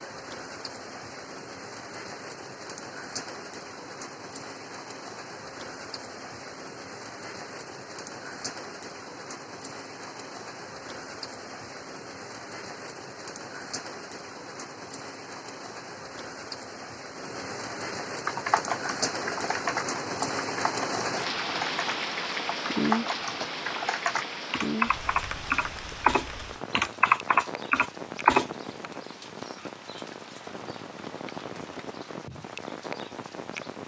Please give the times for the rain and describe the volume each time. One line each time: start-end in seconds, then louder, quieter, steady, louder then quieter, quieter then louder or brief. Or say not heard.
0.0-33.8 louder then quieter.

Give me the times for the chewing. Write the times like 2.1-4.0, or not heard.
not heard.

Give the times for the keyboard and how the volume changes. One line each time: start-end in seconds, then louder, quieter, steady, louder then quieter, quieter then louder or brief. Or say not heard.
18.2-28.5 louder.